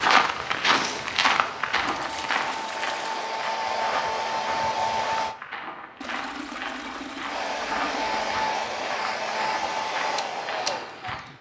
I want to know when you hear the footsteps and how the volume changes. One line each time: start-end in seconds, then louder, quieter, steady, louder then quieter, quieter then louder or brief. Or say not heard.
0.0-11.2 quieter.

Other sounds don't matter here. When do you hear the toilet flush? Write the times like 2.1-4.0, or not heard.
1.8-3.2, 6.0-8.2.